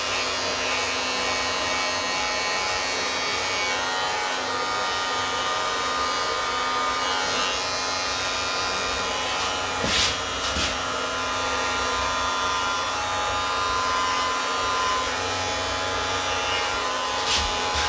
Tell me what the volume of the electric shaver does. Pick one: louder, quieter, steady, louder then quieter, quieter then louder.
steady.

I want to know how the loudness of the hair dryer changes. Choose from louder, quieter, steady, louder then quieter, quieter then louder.
steady.